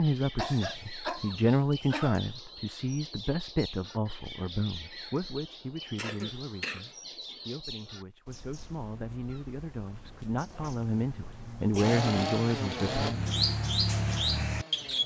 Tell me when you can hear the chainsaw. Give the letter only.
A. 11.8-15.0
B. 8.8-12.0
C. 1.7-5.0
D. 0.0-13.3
A.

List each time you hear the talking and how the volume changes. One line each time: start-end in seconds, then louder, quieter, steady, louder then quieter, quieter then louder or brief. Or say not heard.
0.0-13.3 quieter then louder.